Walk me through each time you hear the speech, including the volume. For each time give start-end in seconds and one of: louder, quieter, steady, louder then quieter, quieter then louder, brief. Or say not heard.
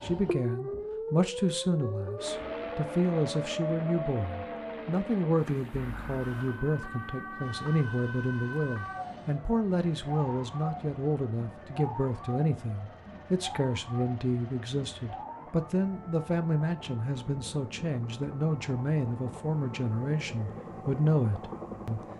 0.0-22.0 steady.